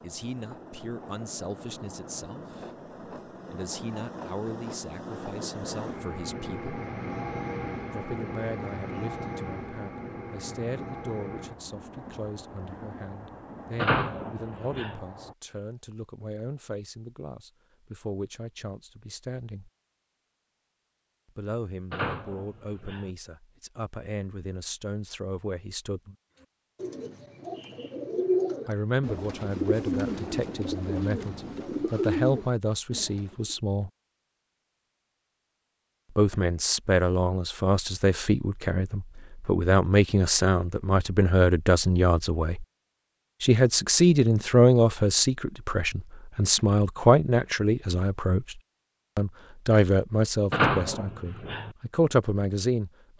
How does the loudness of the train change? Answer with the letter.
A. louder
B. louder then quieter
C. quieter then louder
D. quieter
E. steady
B.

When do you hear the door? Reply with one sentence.
You can hear the door from 13.8 to 15.0 s, from 21.9 to 23.1 s and from 50.5 to 51.8 s.